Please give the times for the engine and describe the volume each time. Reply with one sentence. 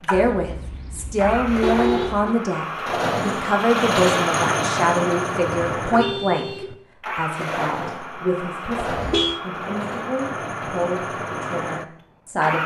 The engine can be heard from 0.0 to 12.6 s, getting louder then quieter.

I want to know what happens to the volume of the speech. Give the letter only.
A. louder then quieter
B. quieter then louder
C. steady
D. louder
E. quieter
E.